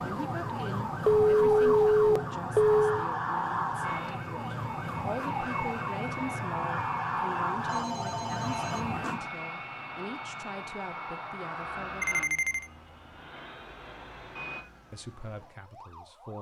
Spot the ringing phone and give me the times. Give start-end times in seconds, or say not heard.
1.1-3.0, 7.7-9.3, 12.0-12.7.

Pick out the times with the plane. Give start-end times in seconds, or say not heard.
3.8-14.7.